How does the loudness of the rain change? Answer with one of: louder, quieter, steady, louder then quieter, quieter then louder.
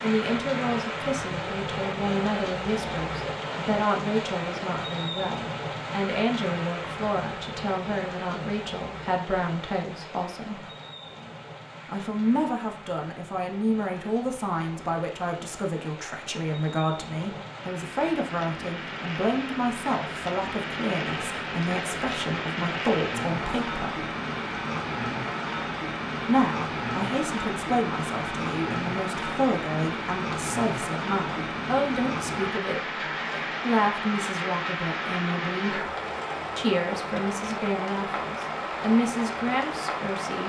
quieter then louder.